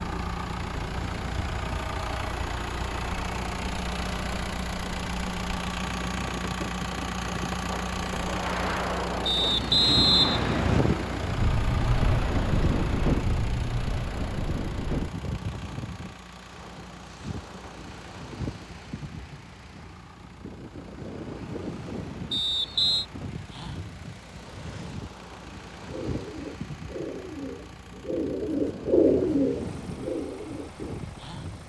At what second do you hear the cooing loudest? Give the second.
29 s.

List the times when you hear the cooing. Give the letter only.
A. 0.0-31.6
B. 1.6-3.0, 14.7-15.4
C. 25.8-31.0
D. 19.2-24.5
C.